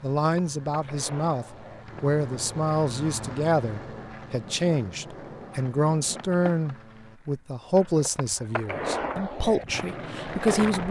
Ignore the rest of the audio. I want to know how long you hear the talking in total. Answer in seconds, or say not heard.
11 s.